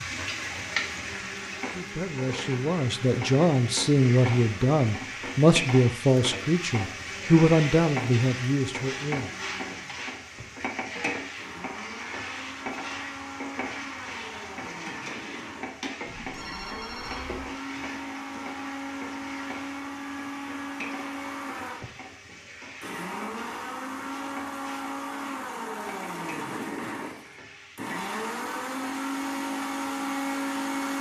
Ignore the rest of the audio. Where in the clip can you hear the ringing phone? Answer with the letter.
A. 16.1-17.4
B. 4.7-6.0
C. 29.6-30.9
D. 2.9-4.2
A.